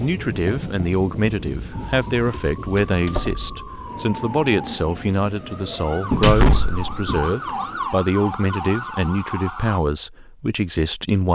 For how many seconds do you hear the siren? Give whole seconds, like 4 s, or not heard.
8 s.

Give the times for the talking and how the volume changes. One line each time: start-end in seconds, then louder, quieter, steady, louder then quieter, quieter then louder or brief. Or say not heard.
0.0-11.3 steady.